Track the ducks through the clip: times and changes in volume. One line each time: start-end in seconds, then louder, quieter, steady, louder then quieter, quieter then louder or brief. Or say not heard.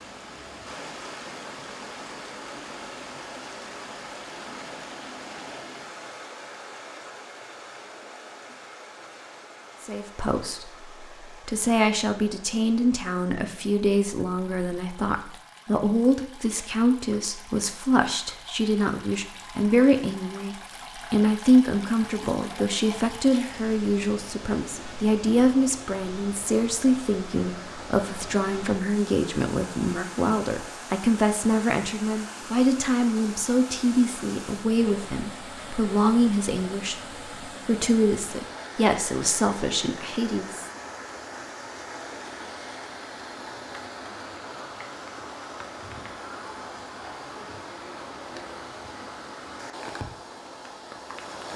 not heard.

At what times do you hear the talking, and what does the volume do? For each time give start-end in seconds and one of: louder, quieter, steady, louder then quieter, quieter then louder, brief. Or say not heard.
9.8-40.7 steady.